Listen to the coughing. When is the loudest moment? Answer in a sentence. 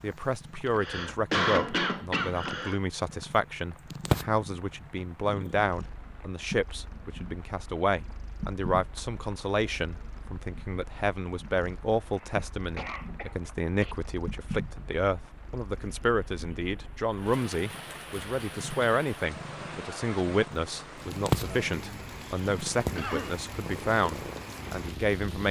The volume of the coughing peaks at 1 second.